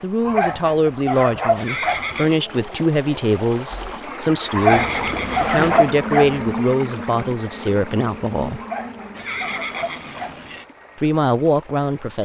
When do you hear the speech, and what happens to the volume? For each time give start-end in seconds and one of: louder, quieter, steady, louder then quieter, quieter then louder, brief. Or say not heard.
0.0-8.6 steady
10.9-12.2 brief.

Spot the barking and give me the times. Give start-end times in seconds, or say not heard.
0.2-2.1, 4.5-6.5, 8.6-10.5.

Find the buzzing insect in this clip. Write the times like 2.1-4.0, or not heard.
3.7-9.8.